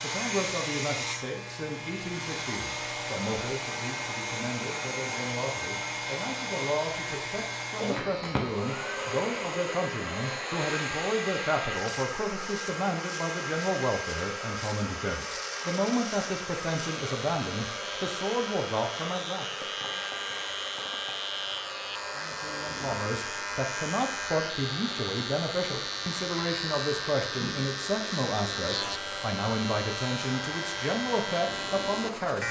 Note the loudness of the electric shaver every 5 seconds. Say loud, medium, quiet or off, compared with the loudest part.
medium, medium, medium, medium, loud, loud, loud.